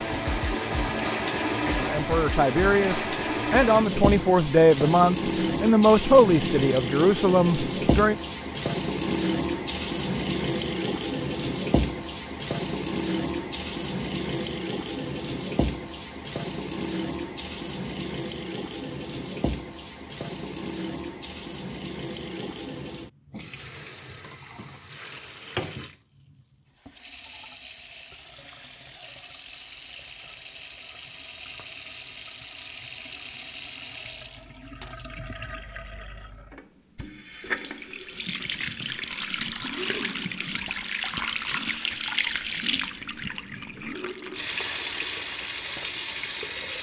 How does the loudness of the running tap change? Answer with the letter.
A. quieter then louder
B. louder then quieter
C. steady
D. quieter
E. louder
A.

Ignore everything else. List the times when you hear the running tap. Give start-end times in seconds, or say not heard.
0.0-46.7.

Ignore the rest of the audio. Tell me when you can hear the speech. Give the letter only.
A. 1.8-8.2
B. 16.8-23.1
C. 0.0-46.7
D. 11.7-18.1
A.